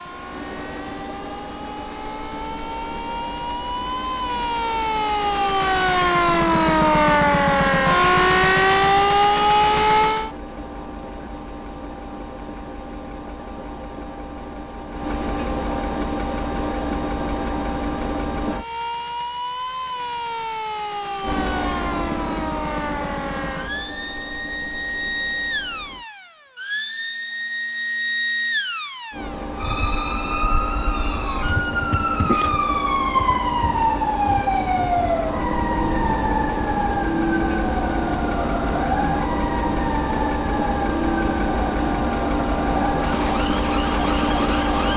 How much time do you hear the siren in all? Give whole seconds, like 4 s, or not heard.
37 s.